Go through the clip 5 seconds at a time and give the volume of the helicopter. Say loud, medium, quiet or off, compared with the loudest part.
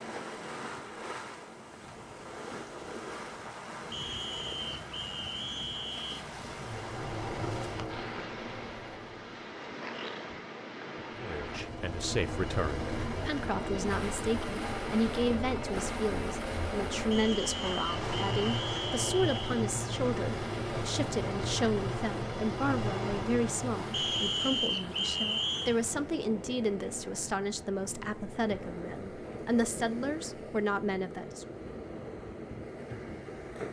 off, medium, loud, loud, loud, off, off.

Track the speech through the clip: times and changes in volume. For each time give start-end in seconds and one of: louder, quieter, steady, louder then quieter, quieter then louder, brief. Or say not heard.
11.2-31.4 steady.